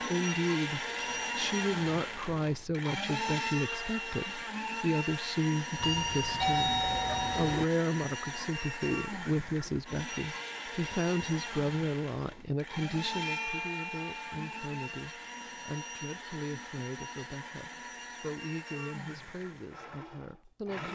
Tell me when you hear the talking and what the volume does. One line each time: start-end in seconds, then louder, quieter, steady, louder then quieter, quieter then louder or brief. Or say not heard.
0.0-20.9 quieter.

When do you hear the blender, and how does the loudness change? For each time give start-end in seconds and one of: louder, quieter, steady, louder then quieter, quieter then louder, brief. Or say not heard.
0.0-20.9 quieter.